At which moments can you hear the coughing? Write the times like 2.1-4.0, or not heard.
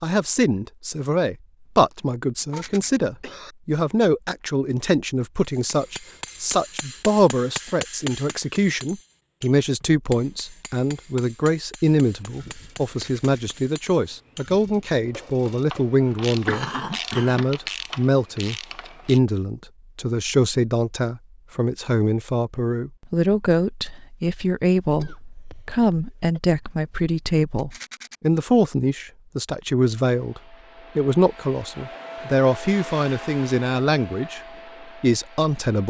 2.5-3.5, 16.4-17.4, 24.9-26.4.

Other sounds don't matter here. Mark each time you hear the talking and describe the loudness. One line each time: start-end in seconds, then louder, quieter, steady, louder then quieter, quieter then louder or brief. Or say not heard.
0.0-34.4 steady
35.0-35.8 brief.